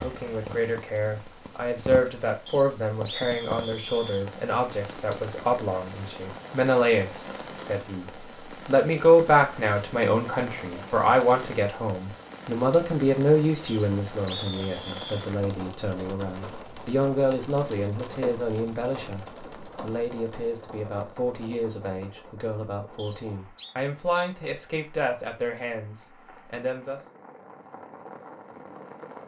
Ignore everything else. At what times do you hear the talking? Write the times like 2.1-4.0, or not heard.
0.0-27.0.